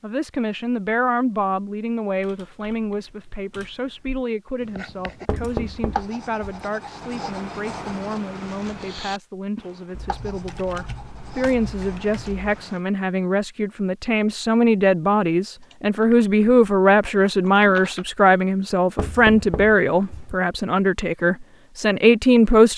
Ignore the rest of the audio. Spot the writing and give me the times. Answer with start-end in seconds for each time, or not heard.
4.5-12.8.